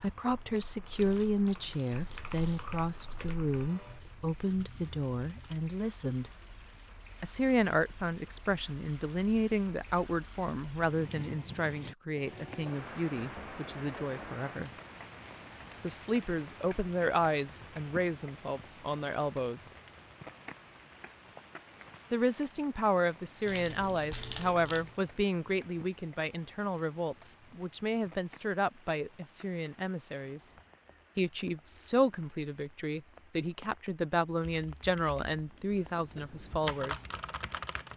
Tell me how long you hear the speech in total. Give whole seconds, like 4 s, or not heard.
32 s.